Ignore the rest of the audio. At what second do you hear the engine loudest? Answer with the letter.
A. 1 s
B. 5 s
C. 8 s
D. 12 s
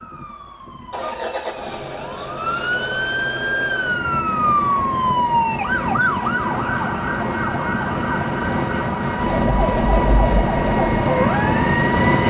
D.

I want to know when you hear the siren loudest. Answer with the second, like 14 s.
5 s.